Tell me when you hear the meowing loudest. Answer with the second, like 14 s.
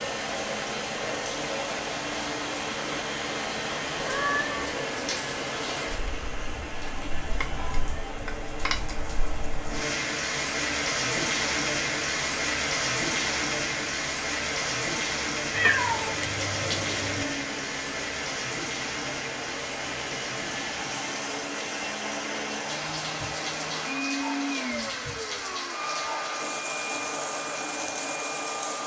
16 s.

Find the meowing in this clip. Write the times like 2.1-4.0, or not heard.
4.0-4.7, 15.5-17.2.